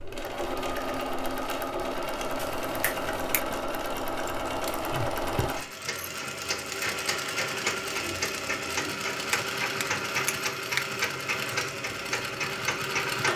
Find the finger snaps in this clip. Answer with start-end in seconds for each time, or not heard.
2.4-3.4, 9.3-10.8.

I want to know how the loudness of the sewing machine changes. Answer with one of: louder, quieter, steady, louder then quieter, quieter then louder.
steady.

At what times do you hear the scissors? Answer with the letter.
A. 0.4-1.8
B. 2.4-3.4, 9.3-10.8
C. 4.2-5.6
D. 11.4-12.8
C.